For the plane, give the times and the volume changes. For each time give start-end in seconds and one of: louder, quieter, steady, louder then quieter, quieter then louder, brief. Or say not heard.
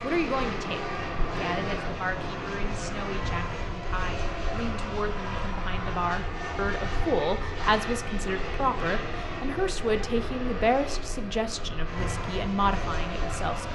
0.0-13.6 steady.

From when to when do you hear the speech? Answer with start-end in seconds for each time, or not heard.
0.0-13.6.